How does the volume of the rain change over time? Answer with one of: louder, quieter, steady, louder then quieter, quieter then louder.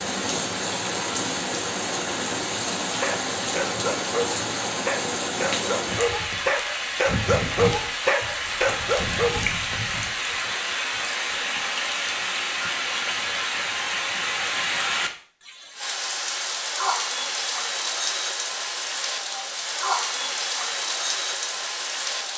steady.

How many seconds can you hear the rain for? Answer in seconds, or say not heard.
22 s.